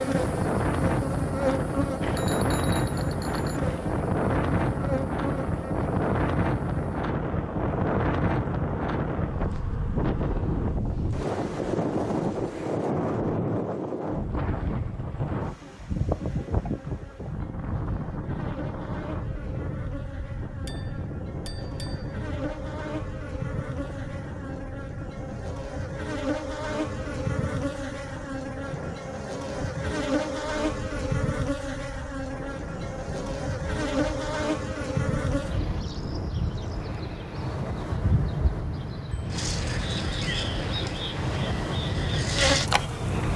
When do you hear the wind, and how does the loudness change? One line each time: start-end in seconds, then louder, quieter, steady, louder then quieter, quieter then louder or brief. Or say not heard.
0.0-43.3 quieter then louder.